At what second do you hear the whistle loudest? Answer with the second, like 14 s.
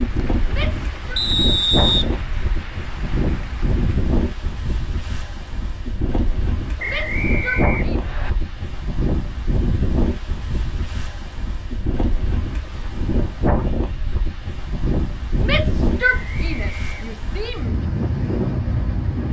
2 s.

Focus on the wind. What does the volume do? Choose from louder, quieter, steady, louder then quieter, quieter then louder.
steady.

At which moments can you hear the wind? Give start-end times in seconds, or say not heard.
0.0-19.2.